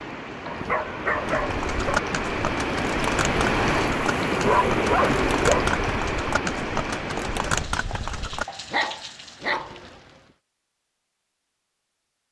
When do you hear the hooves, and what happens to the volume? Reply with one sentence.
The hooves can be heard from 1.4 to 8.4 s, at a steady volume.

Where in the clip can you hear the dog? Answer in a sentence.
You can hear the dog from 0.5 to 2.0 s, from 4.1 to 5.8 s and from 8.4 to 9.7 s.